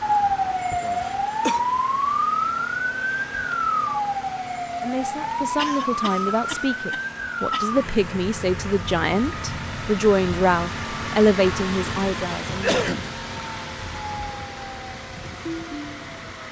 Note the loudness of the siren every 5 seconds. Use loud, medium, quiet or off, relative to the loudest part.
loud, medium, quiet, quiet.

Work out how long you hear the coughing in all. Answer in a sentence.
The coughing can be heard for 4 seconds in total.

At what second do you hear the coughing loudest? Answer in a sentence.
The volume of the coughing peaks at 13 seconds.